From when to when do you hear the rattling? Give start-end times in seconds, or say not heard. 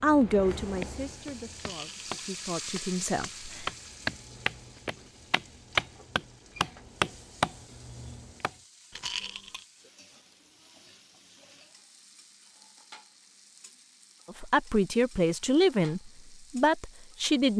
1.6-2.1, 8.9-9.7.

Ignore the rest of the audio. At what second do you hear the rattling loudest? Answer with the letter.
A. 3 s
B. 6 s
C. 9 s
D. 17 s
C.